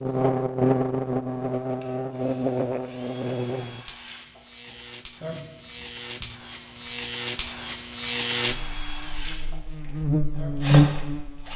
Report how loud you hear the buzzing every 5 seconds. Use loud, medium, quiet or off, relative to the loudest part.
medium, medium, loud.